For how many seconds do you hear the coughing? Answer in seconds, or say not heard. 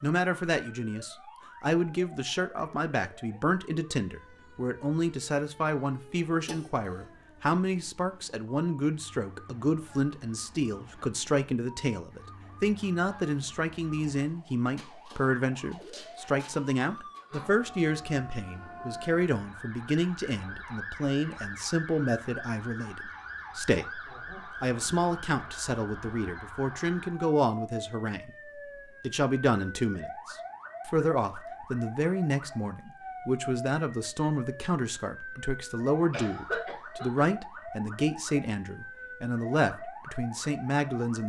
2 s.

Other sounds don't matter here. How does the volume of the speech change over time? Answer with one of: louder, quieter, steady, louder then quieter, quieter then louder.
steady.